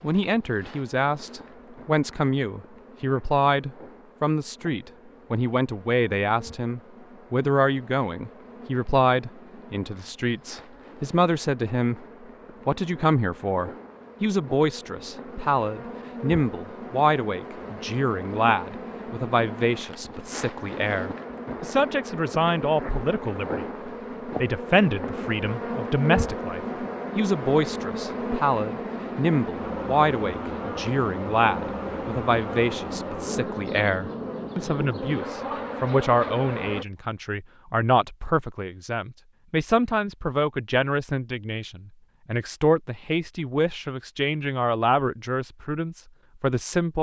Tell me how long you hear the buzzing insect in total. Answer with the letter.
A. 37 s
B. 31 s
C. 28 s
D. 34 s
A.